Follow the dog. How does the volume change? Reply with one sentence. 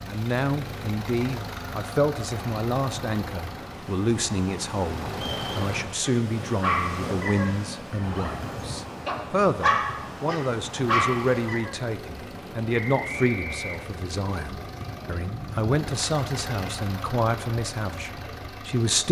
The loudness of the dog goes down, then up.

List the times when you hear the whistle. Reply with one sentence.
The whistle can be heard from 5.1 to 5.5 s and from 12.8 to 13.8 s.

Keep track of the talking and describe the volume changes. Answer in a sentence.
The volume of the talking stays about the same.